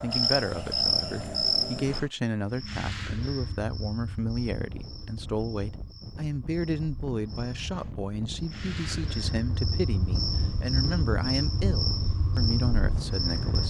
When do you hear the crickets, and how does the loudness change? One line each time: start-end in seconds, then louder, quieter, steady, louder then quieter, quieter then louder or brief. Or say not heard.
0.0-13.6 quieter then louder.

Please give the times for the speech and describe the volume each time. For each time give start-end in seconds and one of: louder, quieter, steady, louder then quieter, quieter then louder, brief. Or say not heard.
0.0-13.6 steady.